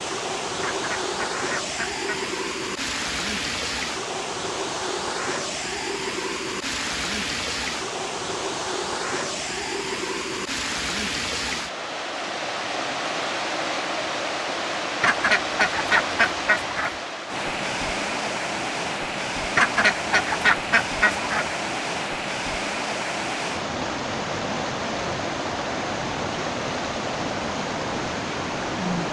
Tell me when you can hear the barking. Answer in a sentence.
You can't hear the barking here.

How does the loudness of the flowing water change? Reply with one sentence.
The loudness of the flowing water stays about the same.